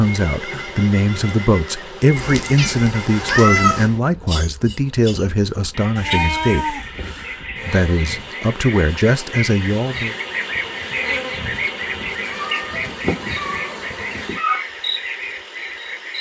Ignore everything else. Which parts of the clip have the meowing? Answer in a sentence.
You can hear the meowing from 2.1 to 3.9 s, from 6.0 to 6.8 s and from 12.3 to 14.7 s.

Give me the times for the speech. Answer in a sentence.
The speech can be heard from 0.0 to 10.2 s.